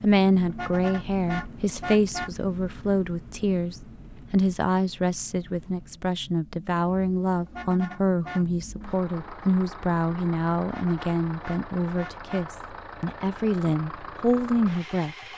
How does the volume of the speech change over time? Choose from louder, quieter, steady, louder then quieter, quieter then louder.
steady.